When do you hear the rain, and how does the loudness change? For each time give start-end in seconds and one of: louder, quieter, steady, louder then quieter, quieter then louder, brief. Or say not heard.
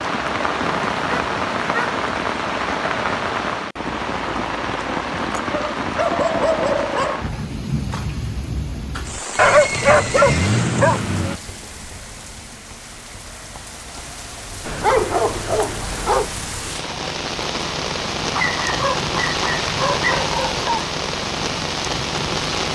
0.0-22.7 quieter then louder.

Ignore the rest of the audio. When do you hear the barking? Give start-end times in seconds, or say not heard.
0.6-2.0, 5.5-7.2, 9.3-11.4, 14.7-16.3, 18.3-20.7.